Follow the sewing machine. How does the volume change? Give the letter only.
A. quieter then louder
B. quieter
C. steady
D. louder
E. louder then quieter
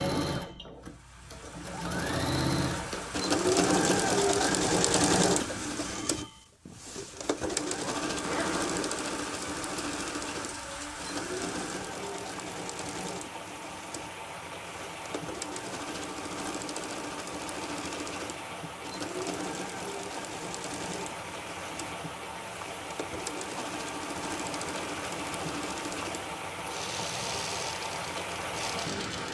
B.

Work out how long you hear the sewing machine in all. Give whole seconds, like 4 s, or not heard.
29 s.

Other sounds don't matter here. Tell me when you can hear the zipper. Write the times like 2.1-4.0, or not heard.
8.1-8.9.